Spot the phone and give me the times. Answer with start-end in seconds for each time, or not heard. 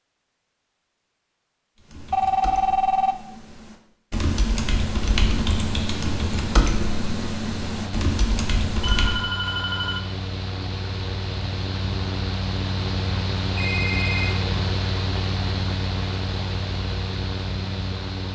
2.1-3.1, 8.8-10.1, 13.6-14.3.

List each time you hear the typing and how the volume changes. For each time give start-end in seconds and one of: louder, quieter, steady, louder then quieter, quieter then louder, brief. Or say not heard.
1.8-9.2 louder.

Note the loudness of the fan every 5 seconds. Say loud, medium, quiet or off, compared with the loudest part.
off, medium, loud, loud.